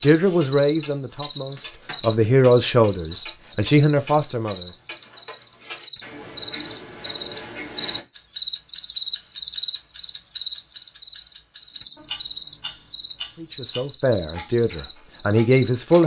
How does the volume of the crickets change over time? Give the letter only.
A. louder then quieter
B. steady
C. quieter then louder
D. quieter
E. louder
A.